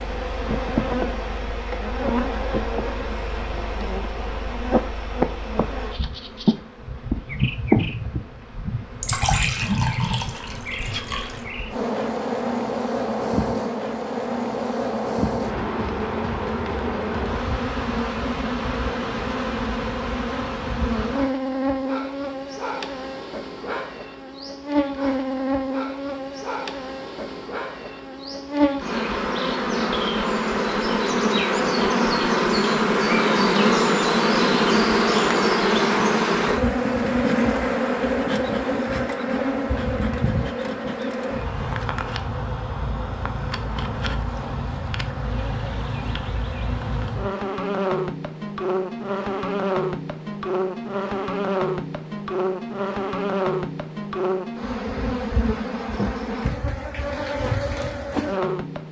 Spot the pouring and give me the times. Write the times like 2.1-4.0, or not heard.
9.0-11.4.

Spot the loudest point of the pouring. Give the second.
9 s.